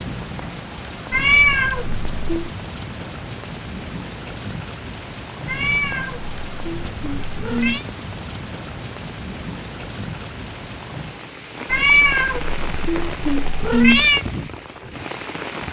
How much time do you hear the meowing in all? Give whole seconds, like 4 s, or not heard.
6 s.